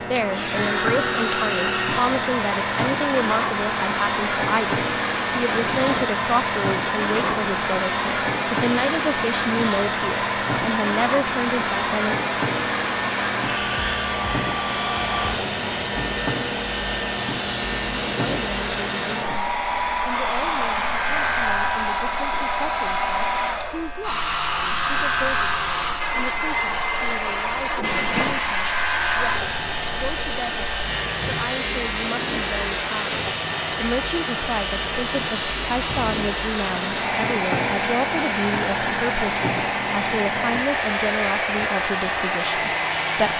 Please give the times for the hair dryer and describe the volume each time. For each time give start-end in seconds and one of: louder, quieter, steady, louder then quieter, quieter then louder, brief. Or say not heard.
0.1-43.3 steady.